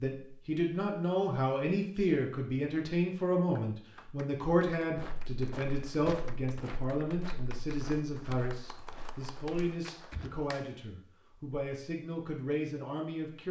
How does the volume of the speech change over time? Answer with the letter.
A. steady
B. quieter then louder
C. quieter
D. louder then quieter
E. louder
C.